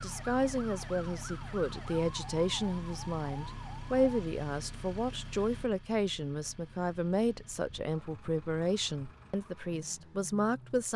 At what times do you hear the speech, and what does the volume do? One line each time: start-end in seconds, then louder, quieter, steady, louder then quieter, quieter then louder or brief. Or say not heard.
0.0-10.9 steady.